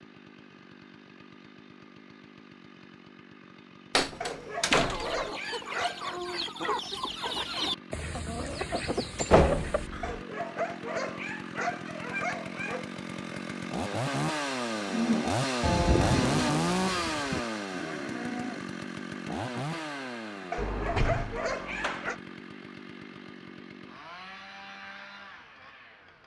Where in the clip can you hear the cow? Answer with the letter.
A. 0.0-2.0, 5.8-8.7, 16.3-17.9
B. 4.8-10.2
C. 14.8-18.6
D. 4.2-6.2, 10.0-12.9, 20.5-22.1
C.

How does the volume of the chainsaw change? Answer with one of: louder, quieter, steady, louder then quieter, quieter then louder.
louder then quieter.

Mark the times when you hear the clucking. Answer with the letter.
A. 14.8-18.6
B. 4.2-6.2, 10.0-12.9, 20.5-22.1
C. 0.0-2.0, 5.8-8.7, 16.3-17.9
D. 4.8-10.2
D.